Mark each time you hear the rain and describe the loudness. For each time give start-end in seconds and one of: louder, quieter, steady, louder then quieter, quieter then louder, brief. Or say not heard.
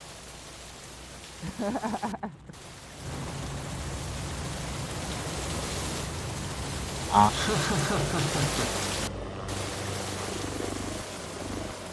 0.0-11.8 louder then quieter.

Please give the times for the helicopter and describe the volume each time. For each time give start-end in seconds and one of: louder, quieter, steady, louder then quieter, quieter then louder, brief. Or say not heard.
0.0-11.8 louder.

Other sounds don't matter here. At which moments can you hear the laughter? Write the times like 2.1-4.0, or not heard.
1.4-2.5, 7.3-8.8.